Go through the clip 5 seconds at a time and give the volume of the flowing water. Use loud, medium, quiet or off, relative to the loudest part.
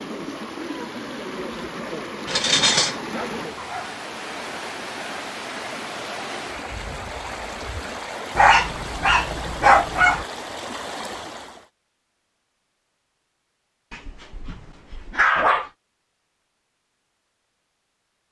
loud, loud, loud, off.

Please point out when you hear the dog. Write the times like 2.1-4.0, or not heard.
2.2-3.9, 8.3-10.2, 13.9-15.7.